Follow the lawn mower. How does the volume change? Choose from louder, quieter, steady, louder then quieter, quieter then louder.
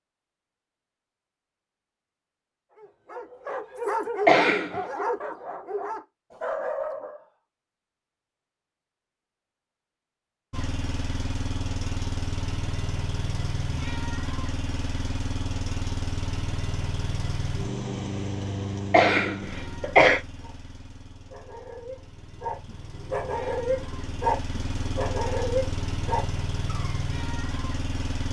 quieter then louder.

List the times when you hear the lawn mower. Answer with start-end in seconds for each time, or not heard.
10.5-28.2.